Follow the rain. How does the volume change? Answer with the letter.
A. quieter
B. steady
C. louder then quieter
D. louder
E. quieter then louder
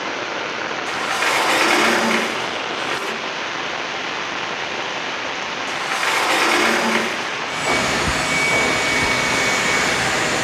B.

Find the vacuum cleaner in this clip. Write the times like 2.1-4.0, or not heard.
7.5-10.3.